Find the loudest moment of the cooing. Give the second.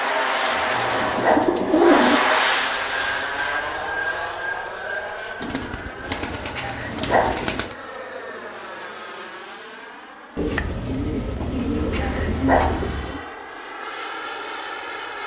2 s.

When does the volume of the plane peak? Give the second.
2 s.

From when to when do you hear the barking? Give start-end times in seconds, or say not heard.
0.7-1.5, 6.5-7.3, 11.9-12.8.